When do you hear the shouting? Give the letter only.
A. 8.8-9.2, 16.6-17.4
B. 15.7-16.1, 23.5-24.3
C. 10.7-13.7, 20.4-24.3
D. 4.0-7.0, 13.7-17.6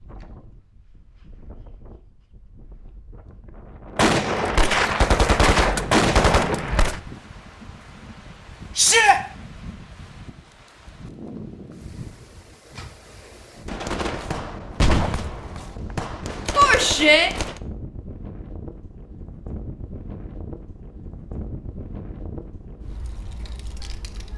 A.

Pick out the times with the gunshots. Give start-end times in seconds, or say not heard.
4.0-7.0, 13.7-17.6.